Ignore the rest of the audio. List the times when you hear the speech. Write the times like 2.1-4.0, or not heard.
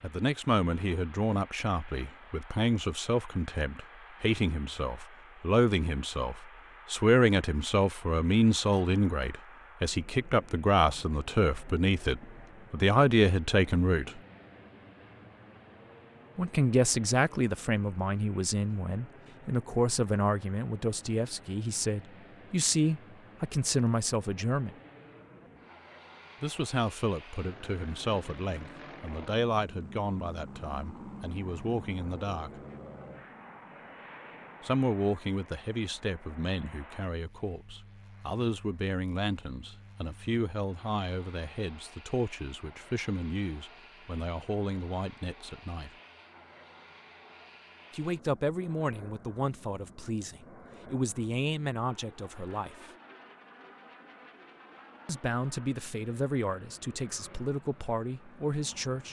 0.0-14.2, 16.4-24.8, 26.4-32.5, 34.6-45.9, 47.9-52.9, 55.0-59.0.